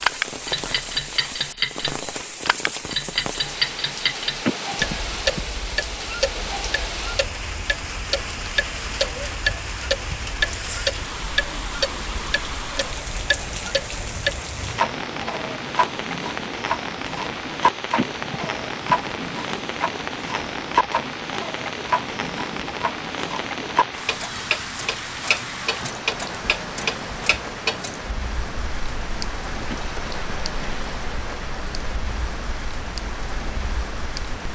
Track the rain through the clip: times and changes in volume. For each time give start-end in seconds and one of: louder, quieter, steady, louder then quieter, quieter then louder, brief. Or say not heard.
0.0-34.5 steady.